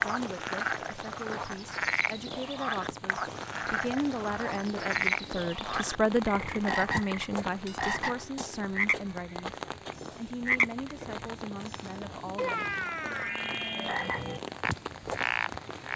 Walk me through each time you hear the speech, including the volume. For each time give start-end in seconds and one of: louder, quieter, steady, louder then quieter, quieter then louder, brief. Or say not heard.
0.0-12.7 louder then quieter.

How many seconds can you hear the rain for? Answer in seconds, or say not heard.
16 s.